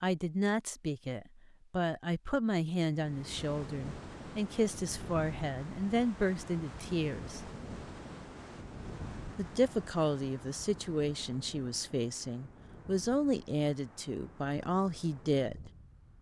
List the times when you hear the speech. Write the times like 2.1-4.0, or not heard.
0.0-7.5, 9.3-15.7.